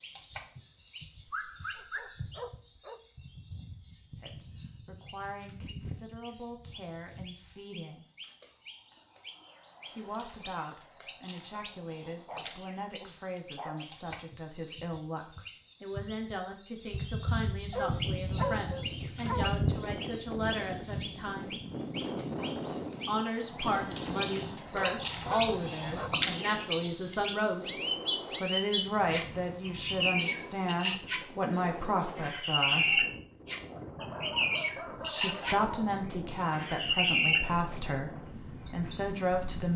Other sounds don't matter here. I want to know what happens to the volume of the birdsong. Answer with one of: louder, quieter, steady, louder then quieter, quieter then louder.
louder.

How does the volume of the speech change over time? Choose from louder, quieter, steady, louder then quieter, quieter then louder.
louder.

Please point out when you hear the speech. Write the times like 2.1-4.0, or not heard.
4.2-8.1, 9.9-21.6, 23.1-27.7, 28.4-33.0, 35.0-39.7.